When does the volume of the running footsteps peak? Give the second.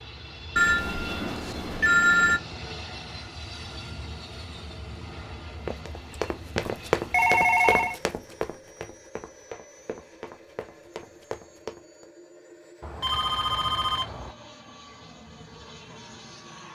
7 s.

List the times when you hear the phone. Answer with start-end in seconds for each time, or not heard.
0.6-2.4, 5.7-8.0, 12.8-14.3.